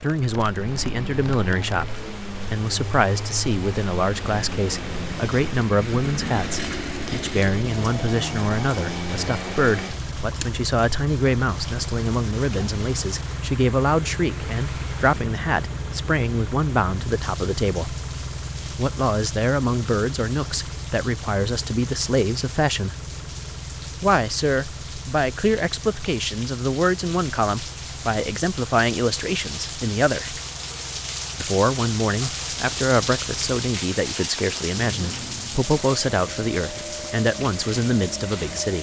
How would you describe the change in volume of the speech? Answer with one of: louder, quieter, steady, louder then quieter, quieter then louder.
steady.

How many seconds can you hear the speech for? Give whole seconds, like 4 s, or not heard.
36 s.